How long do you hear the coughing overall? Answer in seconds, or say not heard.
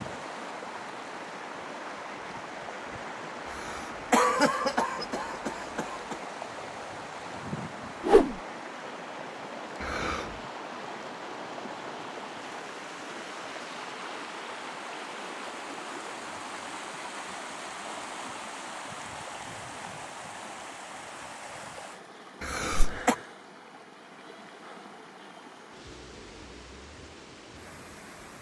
4 s.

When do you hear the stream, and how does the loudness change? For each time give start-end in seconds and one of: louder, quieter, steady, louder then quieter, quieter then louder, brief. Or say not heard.
0.0-28.3 quieter.